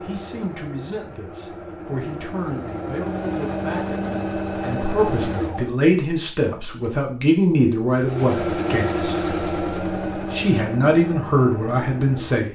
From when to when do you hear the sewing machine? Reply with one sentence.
You can hear the sewing machine from 0.0 to 5.8 s and from 7.9 to 12.5 s.